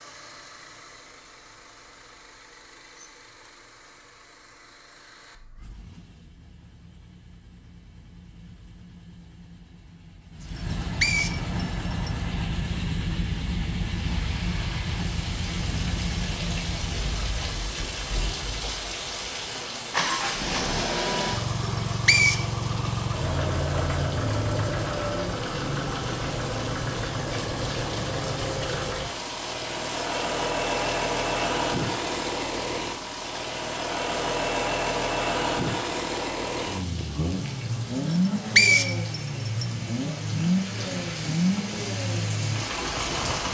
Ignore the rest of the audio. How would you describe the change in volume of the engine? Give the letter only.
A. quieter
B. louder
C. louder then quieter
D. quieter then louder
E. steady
B.